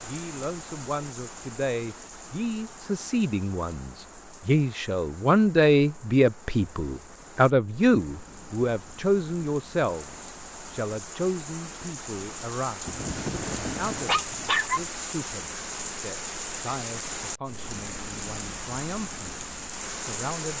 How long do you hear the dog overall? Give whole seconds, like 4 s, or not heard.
2 s.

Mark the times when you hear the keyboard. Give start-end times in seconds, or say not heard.
not heard.